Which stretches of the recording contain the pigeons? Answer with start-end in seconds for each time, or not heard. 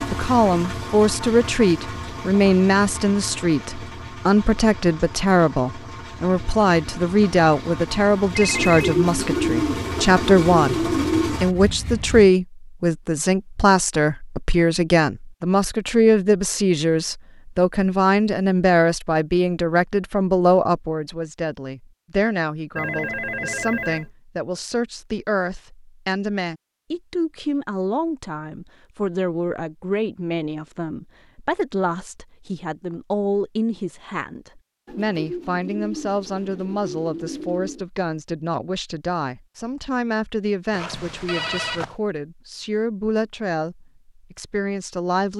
8.5-11.4, 34.9-37.9.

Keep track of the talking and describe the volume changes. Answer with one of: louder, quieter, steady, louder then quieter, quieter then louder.
quieter.